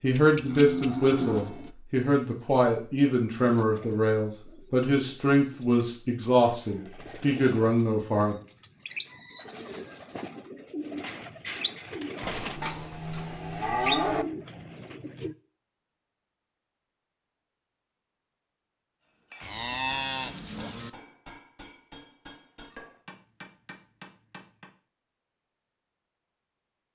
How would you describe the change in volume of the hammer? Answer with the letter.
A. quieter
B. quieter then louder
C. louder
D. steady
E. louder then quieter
C.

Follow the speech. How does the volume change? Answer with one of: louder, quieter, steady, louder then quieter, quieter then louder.
steady.